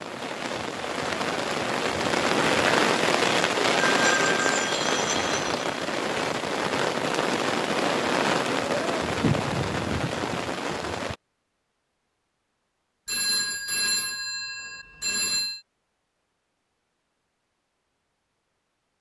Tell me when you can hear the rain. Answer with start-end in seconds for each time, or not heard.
0.0-11.2.